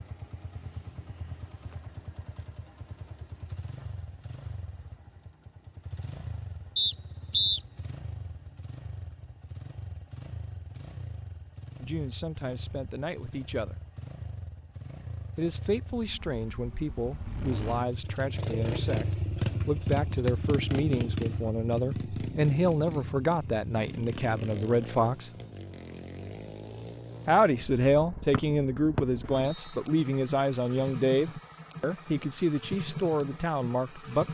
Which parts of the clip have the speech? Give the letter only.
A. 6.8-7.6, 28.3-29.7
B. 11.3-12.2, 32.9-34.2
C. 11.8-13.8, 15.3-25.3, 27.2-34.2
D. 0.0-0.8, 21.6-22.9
C.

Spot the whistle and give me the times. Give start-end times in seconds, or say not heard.
6.8-7.6, 28.3-29.7.